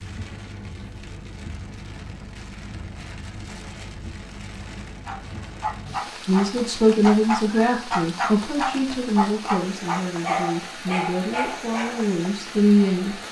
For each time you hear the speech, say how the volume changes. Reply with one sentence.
You can hear the speech from 6.2 to 13.2 s, getting quieter then louder.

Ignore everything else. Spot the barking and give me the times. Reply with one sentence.
You can hear the barking from 5.0 to 12.1 s.